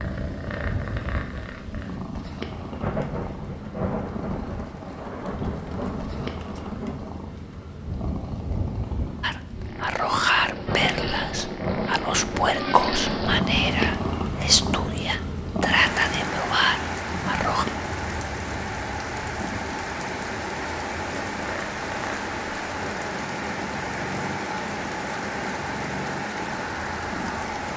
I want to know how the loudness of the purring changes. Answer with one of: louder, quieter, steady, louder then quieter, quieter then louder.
louder then quieter.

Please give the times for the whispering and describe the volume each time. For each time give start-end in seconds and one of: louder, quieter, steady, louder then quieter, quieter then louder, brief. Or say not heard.
9.2-17.6 steady.